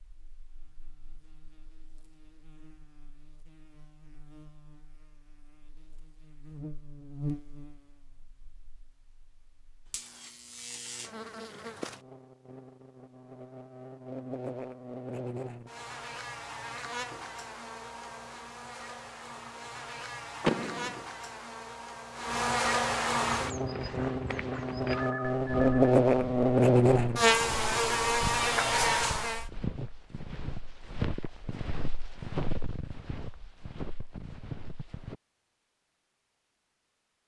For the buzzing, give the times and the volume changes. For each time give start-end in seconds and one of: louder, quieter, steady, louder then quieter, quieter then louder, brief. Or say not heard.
0.1-29.4 louder.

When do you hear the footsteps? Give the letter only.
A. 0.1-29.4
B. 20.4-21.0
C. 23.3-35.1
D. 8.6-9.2
C.